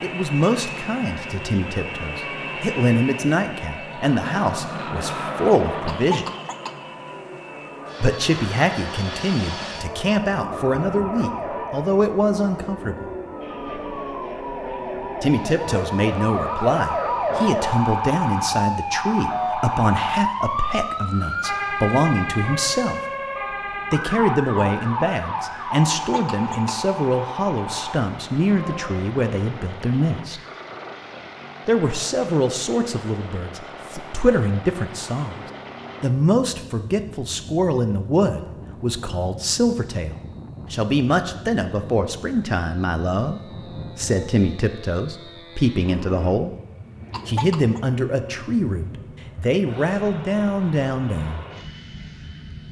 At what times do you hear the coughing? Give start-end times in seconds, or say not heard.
5.8-6.7, 25.9-26.8, 47.1-47.8.